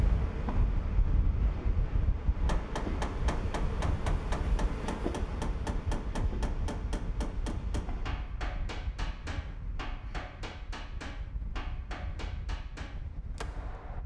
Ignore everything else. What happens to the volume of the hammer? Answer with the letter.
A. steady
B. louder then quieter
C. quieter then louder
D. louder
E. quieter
E.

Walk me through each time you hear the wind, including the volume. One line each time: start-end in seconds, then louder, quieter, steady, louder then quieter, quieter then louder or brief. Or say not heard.
0.0-14.0 quieter.